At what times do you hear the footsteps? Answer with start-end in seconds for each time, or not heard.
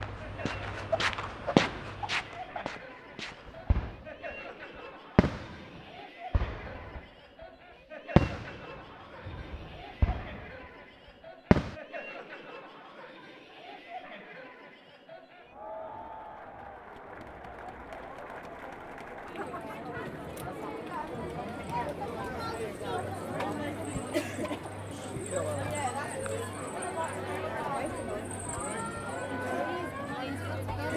0.0-3.5.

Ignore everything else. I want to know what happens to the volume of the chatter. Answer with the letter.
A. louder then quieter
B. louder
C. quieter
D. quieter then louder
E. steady
B.